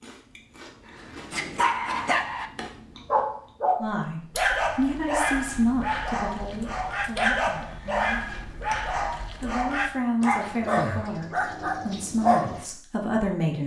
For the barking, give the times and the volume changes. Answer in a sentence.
You can hear the barking from 0.9 to 12.7 s, at a steady volume.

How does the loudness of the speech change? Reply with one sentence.
The volume of the speech goes down, then up.